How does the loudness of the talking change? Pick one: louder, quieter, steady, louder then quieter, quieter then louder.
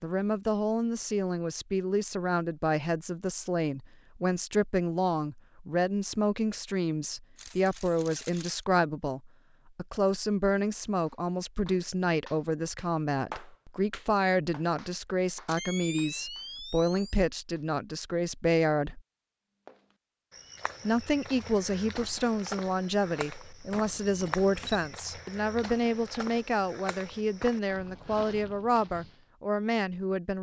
steady.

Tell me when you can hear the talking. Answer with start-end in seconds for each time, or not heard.
0.0-19.0, 20.9-30.3.